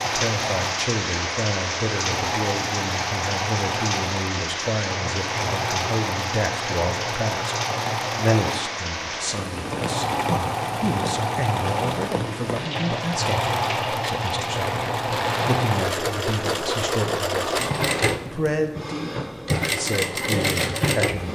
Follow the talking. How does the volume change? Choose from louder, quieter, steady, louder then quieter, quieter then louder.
steady.